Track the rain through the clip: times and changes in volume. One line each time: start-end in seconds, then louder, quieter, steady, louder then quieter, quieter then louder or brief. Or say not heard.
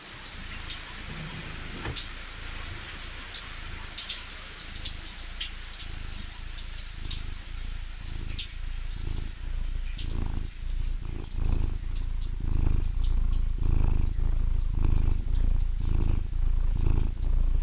0.0-17.5 quieter.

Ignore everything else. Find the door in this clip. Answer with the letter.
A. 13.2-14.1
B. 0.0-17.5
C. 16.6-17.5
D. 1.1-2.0
D.